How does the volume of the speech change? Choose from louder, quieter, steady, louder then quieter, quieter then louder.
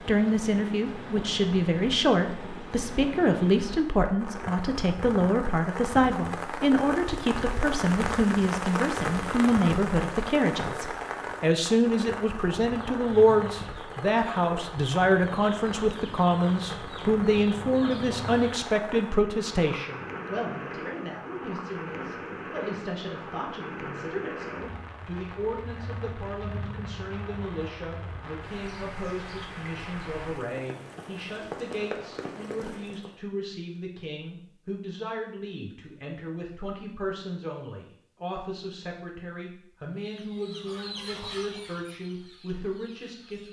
quieter.